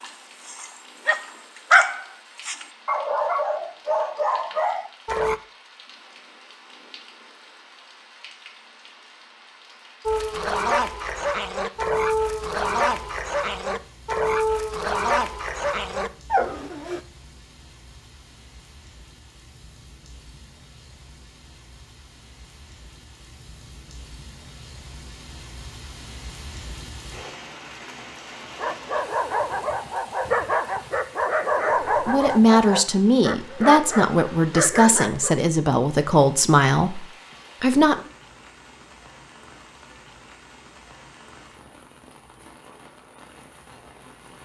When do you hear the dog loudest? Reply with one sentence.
The volume of the dog peaks at 2 seconds.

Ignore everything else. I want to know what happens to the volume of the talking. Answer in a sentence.
The loudness of the talking stays about the same.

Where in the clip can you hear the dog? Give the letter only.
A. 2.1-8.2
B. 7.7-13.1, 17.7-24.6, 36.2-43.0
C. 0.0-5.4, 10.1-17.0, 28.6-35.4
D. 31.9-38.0
C.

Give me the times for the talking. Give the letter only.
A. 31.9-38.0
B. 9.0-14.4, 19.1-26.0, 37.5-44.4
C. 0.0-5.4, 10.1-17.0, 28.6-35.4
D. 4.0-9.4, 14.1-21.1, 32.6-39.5
A.